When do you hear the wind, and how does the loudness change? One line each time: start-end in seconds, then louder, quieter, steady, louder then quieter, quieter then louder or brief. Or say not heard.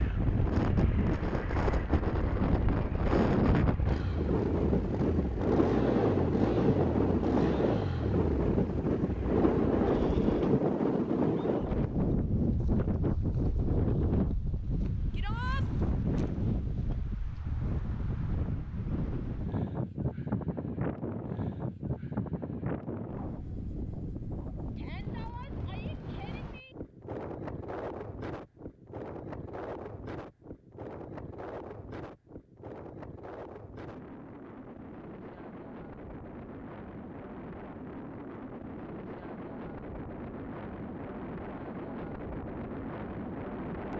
0.0-43.9 quieter.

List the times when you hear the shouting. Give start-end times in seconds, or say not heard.
15.1-15.7, 24.8-26.8.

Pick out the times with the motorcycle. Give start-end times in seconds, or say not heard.
0.0-10.6.